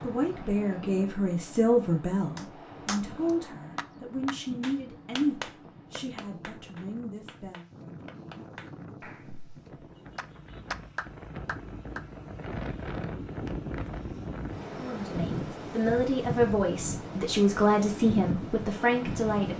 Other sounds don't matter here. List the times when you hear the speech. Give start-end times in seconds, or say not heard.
0.0-7.7, 14.8-19.5.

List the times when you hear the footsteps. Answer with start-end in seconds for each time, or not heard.
not heard.